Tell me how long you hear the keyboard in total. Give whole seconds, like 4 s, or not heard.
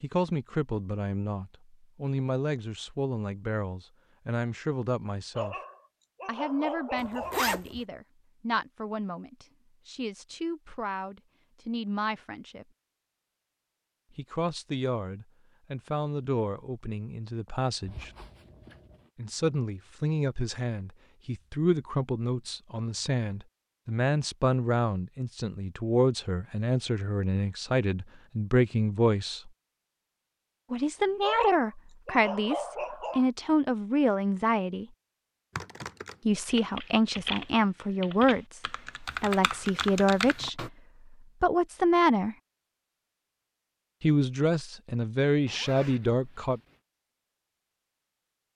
5 s.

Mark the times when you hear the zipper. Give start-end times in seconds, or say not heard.
7.0-7.8, 17.9-19.1, 45.5-46.8.